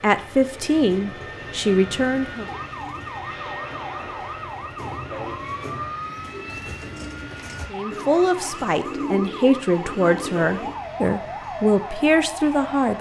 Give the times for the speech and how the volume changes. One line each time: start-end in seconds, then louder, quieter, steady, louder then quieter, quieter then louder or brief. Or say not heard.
0.0-2.5 brief
7.7-12.9 steady.